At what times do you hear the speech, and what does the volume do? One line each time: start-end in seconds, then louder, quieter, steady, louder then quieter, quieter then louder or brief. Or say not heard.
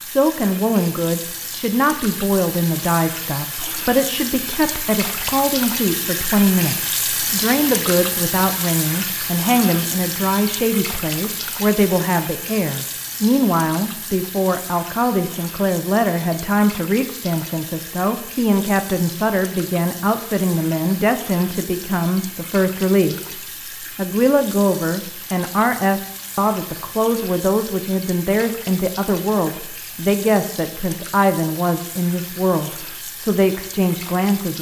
0.0-34.5 steady.